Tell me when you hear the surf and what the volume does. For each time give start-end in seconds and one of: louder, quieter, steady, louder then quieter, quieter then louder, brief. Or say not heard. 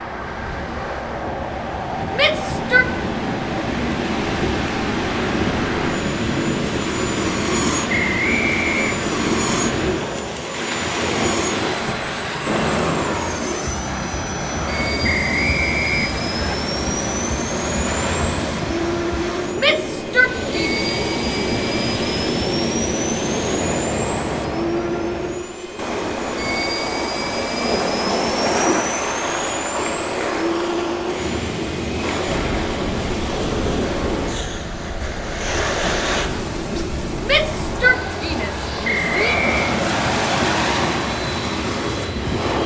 0.0-42.6 steady.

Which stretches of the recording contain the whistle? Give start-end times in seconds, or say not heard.
7.8-9.0, 15.0-16.6, 38.8-39.8.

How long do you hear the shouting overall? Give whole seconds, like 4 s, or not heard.
4 s.